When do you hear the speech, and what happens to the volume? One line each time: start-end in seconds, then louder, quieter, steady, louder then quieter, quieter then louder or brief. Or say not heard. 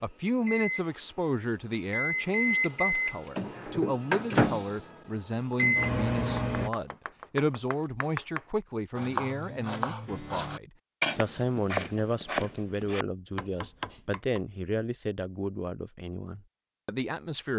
0.0-17.5 steady.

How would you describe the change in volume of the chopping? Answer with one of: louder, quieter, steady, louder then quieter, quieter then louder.
louder then quieter.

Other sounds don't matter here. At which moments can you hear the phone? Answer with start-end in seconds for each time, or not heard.
not heard.